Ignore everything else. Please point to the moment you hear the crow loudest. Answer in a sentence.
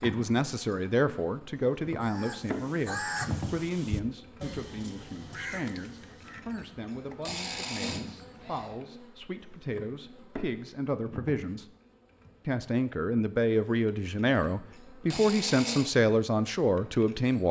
The volume of the crow peaks at 3 seconds.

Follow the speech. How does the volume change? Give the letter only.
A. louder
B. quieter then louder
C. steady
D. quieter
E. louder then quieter
B.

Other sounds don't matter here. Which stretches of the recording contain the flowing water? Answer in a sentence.
The flowing water can't be heard in this clip.